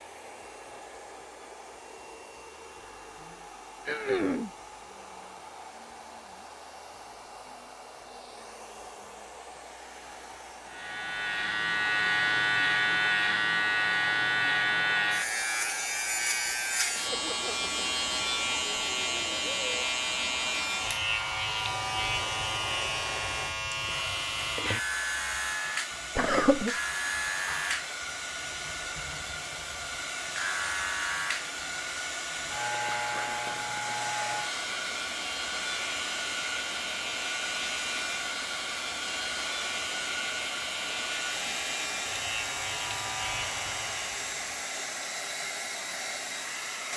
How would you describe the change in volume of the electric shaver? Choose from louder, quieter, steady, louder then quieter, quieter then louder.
quieter.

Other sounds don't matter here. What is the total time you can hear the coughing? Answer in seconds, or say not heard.
2 s.